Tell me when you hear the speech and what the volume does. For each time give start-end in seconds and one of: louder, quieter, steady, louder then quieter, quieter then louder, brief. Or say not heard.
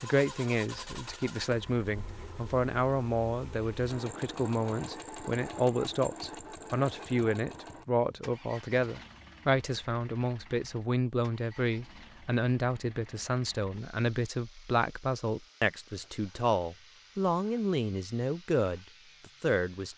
0.0-19.9 steady.